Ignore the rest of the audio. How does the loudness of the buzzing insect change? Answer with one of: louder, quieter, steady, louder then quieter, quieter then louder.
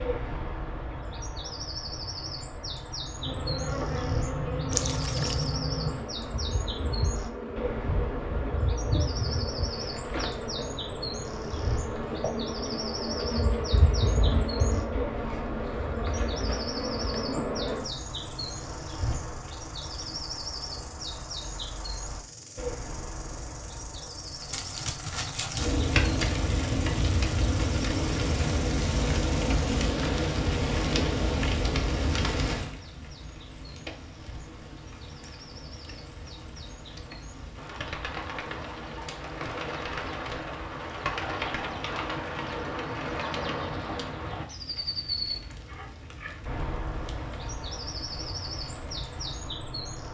quieter.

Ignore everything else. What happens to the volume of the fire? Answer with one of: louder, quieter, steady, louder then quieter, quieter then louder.
quieter.